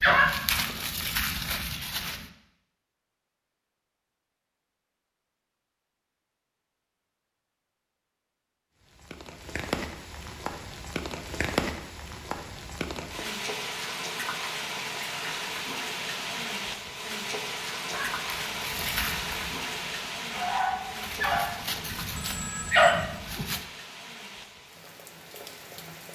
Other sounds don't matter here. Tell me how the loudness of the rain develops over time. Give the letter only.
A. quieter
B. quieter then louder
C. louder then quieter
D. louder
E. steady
A.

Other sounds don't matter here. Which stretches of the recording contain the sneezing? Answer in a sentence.
You can't hear the sneezing here.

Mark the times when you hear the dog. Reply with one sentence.
You can hear the dog from 0.0 to 2.2 s and from 17.9 to 23.6 s.